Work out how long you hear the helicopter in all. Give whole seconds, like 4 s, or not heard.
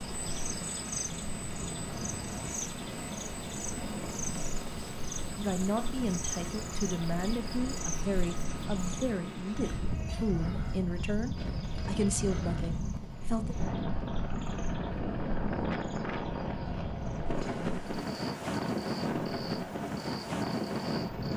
21 s.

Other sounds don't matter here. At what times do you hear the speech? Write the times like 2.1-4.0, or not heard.
5.3-13.6.